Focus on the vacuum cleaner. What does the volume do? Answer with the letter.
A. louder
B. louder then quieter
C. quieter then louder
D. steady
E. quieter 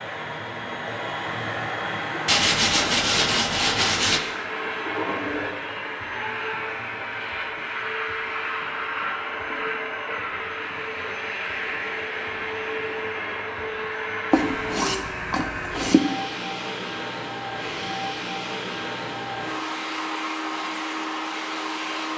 D.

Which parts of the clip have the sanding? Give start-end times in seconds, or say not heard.
2.2-4.2, 14.3-16.1.